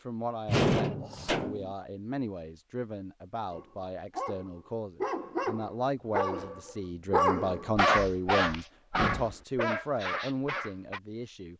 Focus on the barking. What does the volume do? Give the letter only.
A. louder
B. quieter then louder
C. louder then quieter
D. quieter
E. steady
C.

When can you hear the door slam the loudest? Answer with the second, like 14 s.
1 s.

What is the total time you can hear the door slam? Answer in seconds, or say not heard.
2 s.